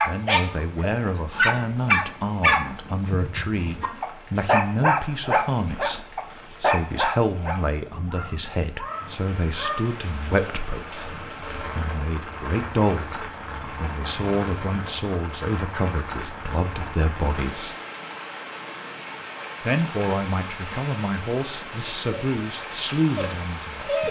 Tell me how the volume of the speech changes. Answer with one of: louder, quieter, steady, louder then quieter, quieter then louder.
steady.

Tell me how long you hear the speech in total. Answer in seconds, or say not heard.
22 s.